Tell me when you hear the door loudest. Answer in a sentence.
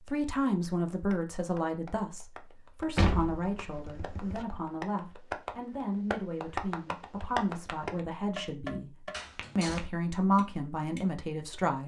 The loudest moment of the door is at 3 seconds.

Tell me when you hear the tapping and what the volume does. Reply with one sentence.
The tapping can be heard from 0.9 to 11.6 s, getting louder then quieter.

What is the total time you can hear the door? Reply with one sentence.
You can hear the door for 2 seconds altogether.